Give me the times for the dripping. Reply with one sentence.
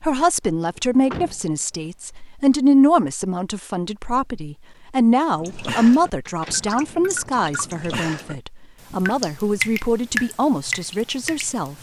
You can hear the dripping from 5.3 to 11.7 s.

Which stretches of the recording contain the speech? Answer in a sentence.
You can hear the speech from 0.0 to 11.7 s.